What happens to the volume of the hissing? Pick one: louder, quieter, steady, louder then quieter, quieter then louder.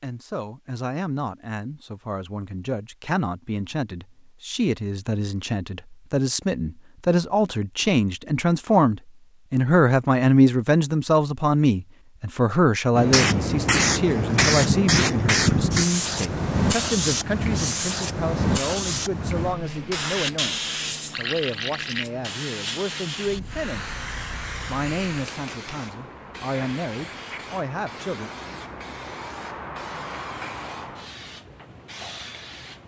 quieter.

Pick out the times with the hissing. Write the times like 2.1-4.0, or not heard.
12.9-32.8.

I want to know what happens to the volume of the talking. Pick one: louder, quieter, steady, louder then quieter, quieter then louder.
louder then quieter.